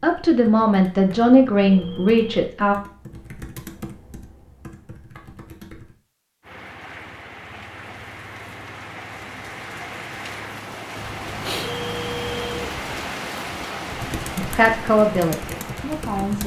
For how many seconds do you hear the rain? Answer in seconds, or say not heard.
10 s.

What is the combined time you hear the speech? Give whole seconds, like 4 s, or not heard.
5 s.